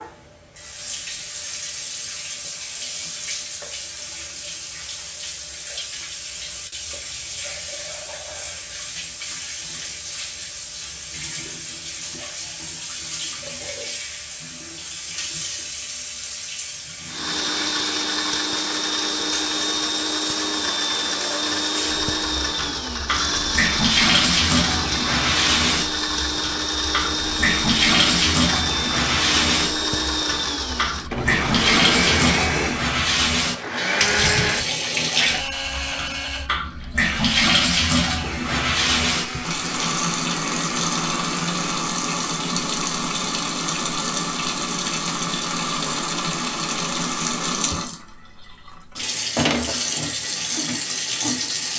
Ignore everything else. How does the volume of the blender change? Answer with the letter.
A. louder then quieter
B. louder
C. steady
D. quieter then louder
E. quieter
E.